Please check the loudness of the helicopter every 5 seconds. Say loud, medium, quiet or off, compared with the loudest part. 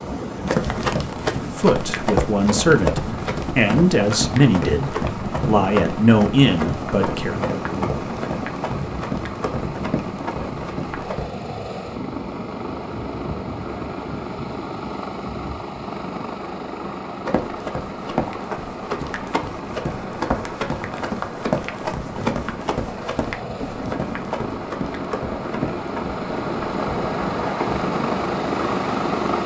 medium, medium, medium, medium, medium, loud.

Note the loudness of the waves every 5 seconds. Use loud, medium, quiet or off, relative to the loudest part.
loud, loud, medium, medium, medium, loud.